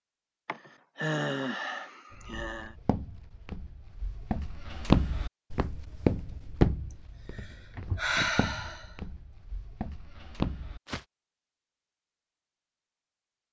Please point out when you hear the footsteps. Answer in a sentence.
You can hear the footsteps from 2.1 to 11.1 s.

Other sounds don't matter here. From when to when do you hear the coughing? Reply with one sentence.
The coughing can't be heard in this clip.